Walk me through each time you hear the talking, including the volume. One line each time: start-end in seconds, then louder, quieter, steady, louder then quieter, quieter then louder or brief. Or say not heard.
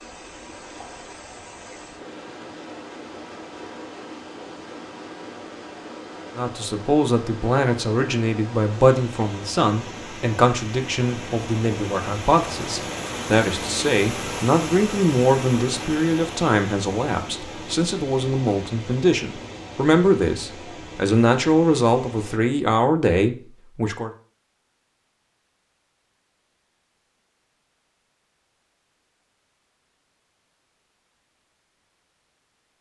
6.3-24.1 steady.